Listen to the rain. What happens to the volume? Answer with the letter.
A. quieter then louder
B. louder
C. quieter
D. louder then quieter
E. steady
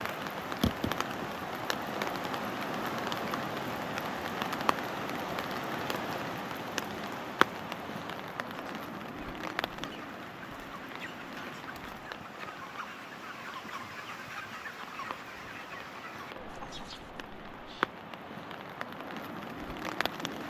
A.